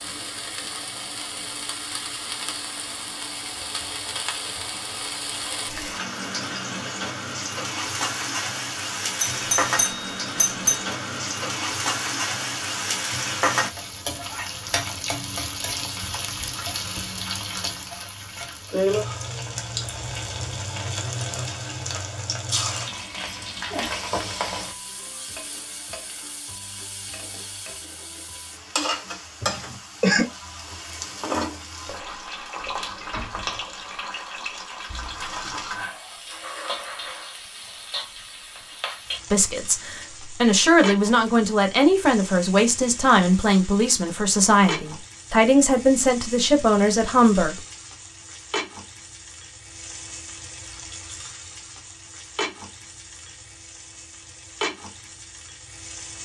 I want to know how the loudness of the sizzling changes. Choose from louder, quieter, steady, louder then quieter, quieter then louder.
quieter.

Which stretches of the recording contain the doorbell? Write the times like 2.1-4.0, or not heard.
9.2-10.8.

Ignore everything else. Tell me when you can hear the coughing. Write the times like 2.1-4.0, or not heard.
29.4-30.2.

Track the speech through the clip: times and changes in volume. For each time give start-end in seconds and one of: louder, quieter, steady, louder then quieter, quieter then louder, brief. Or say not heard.
39.3-47.6 steady.